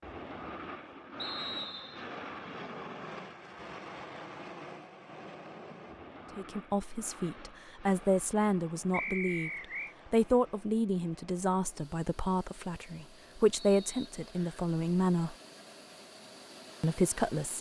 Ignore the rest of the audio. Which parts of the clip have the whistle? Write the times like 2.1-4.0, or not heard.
1.1-2.0, 8.9-9.9, 13.6-14.7.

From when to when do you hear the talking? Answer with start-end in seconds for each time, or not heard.
6.3-9.5, 10.1-15.3, 16.8-17.5.